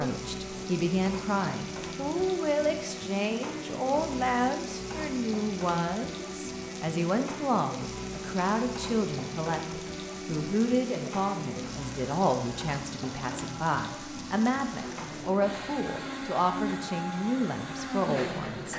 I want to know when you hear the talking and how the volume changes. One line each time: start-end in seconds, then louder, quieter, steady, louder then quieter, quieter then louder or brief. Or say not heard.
0.0-18.7 steady.